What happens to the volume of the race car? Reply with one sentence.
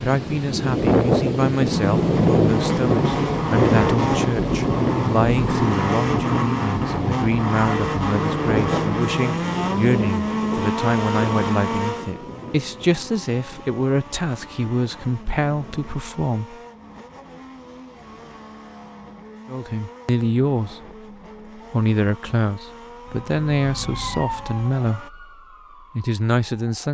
The volume of the race car goes down.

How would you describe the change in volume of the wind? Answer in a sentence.
The loudness of the wind goes down.